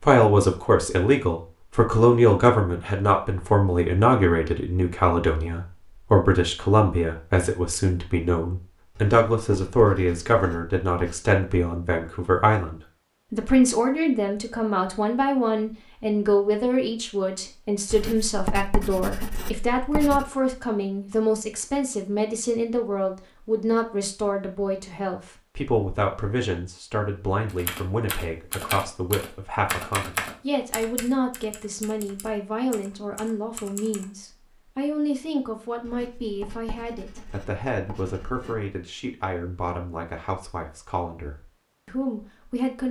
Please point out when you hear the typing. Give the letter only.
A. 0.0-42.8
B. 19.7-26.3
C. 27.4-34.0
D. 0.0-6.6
C.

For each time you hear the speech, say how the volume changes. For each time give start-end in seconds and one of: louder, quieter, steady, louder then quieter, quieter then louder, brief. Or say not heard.
0.0-42.8 quieter.